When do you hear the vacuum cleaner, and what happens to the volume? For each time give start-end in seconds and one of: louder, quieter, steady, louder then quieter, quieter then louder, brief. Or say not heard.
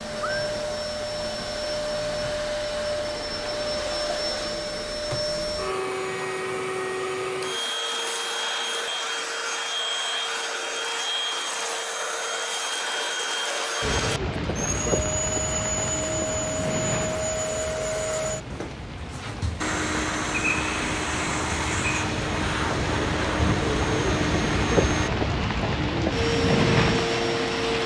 0.0-27.8 steady.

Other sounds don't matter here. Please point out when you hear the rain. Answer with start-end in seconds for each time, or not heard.
13.8-27.8.